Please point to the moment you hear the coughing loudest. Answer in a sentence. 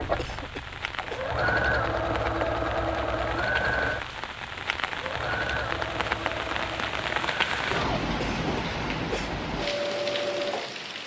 The volume of the coughing peaks at 9 seconds.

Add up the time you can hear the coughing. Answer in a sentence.
You can hear the coughing for 2 seconds altogether.